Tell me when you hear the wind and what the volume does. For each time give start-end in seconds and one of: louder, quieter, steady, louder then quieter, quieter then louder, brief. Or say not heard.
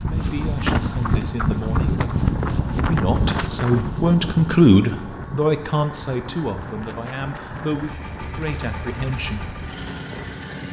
0.0-10.6 quieter.